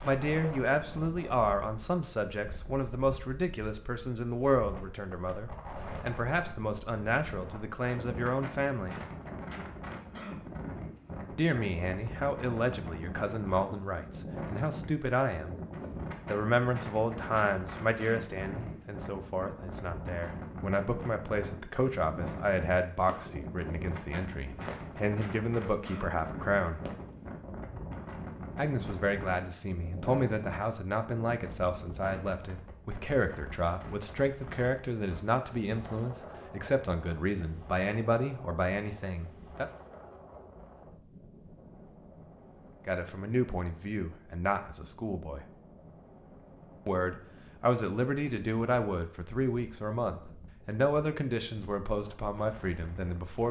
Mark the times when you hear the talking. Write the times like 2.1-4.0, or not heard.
0.0-9.0, 11.3-15.6, 16.3-26.8, 28.6-39.6, 42.9-45.5, 46.9-53.4.